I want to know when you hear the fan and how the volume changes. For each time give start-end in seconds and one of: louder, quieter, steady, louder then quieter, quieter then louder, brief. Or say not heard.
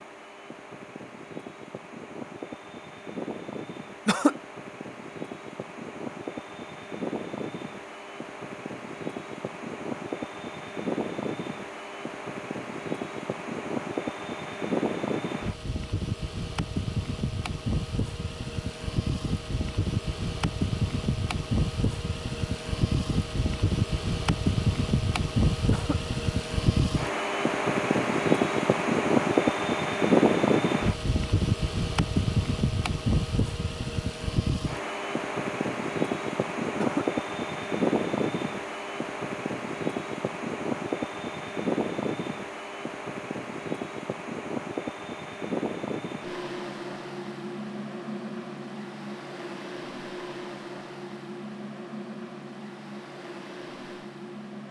0.0-54.6 louder then quieter.